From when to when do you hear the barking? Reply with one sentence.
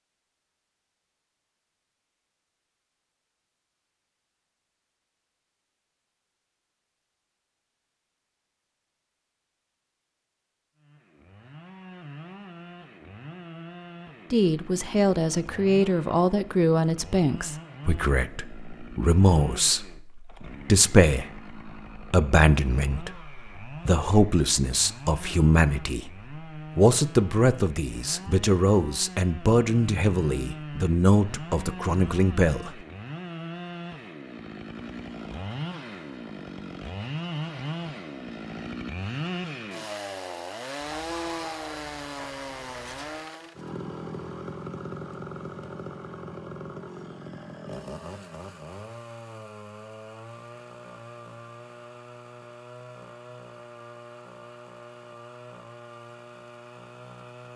You can hear the barking from 40.8 to 43.2 s.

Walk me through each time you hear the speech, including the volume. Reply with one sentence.
You can hear the speech from 14.3 to 32.7 s, at a steady volume.